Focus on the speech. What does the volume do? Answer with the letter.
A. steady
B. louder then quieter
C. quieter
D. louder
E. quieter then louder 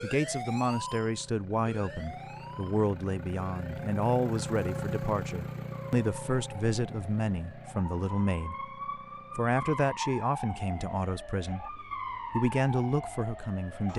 A.